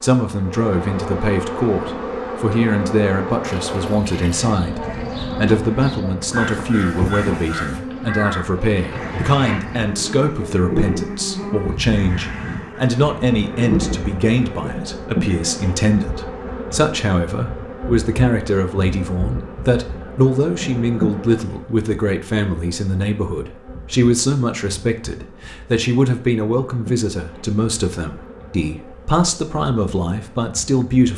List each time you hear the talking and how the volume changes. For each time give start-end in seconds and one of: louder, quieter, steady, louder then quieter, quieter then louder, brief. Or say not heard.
0.0-31.1 steady.